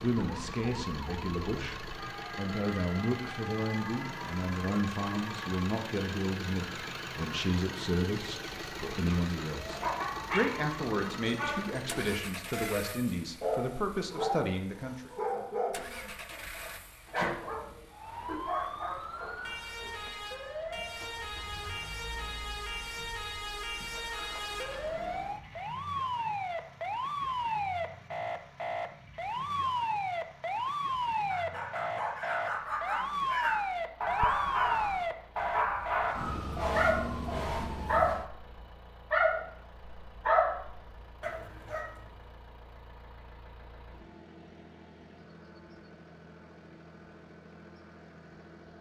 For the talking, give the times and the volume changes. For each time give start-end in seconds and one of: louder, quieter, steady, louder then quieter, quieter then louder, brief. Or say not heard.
0.0-15.1 steady.